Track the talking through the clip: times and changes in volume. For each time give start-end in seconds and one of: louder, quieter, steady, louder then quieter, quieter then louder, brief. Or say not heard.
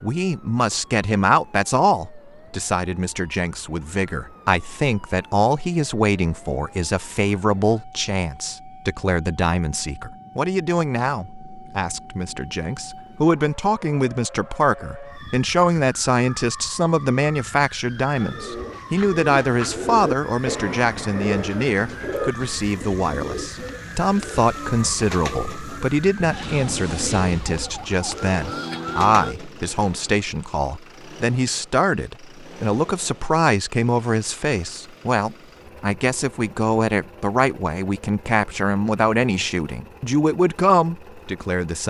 0.0-41.8 steady.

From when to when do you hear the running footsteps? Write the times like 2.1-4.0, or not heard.
not heard.